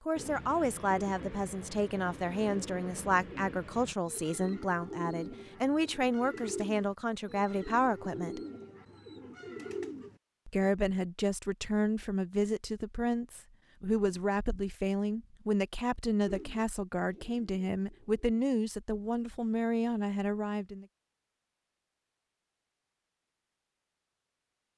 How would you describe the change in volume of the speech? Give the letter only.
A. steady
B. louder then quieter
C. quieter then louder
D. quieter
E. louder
A.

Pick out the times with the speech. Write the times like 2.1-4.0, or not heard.
0.1-8.4, 10.4-20.9.